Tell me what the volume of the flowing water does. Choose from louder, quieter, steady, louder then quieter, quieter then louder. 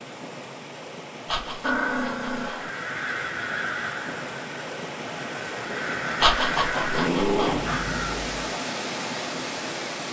louder.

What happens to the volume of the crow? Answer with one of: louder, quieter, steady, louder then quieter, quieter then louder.
quieter then louder.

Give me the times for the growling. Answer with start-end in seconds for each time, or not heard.
1.6-2.5, 6.9-7.6.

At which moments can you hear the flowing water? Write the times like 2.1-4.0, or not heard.
0.0-10.0.